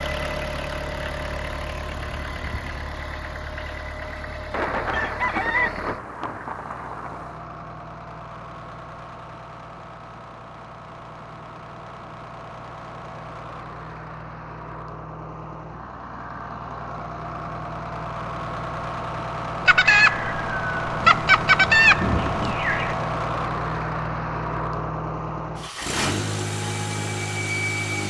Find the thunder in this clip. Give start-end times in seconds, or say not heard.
4.5-7.4, 20.9-22.6.